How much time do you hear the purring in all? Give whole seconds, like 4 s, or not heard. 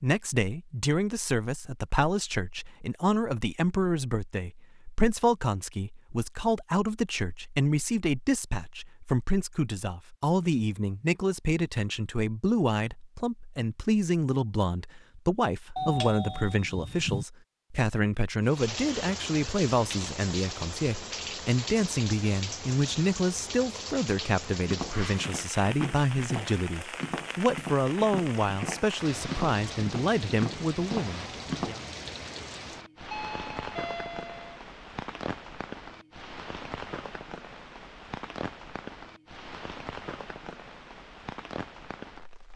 not heard.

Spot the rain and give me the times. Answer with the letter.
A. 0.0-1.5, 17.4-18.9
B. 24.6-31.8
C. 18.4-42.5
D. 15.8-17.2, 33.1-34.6
C.